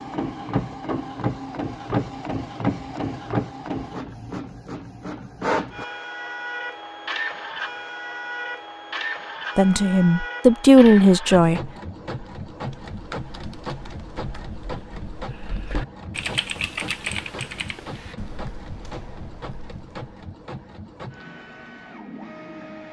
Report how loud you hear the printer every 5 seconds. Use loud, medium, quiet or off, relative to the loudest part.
loud, loud, medium, medium, medium.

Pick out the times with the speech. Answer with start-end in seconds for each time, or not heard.
9.6-11.7.